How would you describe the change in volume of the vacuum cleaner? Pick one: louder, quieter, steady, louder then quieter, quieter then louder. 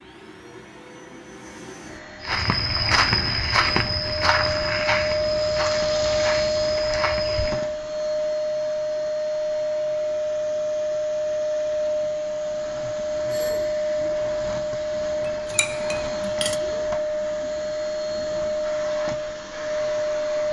louder.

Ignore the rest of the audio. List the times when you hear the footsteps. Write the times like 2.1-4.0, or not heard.
2.2-7.7.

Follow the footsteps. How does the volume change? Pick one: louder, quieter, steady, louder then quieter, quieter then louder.
quieter.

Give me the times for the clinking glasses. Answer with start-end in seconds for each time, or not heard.
15.2-16.6.